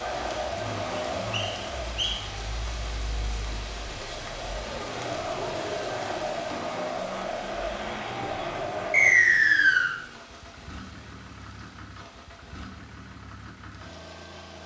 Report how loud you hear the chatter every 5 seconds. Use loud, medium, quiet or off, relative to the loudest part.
loud, loud, off.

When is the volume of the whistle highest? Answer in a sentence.
The loudest moment of the whistle is at 9 seconds.